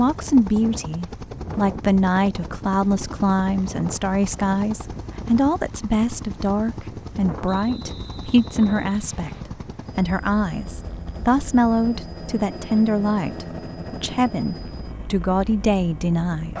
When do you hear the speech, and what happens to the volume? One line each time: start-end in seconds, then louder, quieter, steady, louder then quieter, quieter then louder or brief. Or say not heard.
0.0-16.5 steady.